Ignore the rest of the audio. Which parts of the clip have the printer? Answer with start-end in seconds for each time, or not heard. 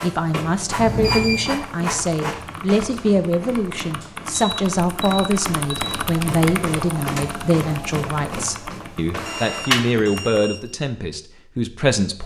0.0-10.3.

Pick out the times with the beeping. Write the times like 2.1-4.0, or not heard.
0.8-1.6, 4.5-6.0, 9.2-10.6.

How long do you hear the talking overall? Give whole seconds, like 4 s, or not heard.
12 s.